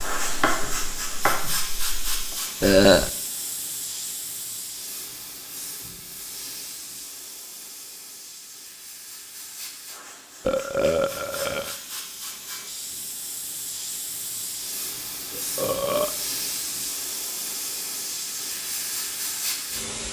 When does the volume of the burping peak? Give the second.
3 s.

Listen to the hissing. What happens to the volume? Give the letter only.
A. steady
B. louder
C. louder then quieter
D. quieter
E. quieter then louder
E.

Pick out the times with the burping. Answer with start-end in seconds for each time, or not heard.
2.6-3.1, 10.4-11.8, 15.3-16.1.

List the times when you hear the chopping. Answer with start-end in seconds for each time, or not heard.
0.0-2.4.